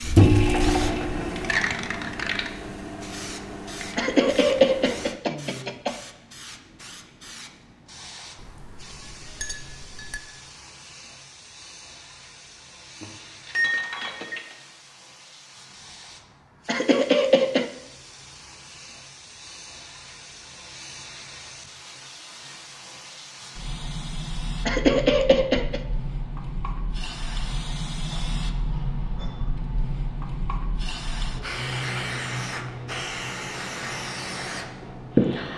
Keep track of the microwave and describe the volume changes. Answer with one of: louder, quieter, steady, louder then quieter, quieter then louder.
quieter.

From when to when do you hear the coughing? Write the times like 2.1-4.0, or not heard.
4.0-6.0, 16.6-17.6, 24.6-25.8.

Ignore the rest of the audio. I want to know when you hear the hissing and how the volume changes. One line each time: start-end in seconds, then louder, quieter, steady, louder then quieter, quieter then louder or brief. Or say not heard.
0.0-35.5 quieter then louder.